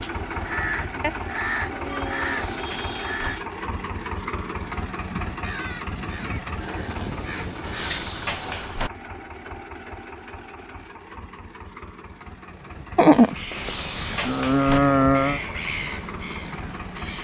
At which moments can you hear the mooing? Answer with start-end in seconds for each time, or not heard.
1.0-2.6, 6.6-8.1, 12.9-15.4.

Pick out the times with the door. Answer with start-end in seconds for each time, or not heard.
2.2-3.2, 7.6-8.9, 13.6-14.8.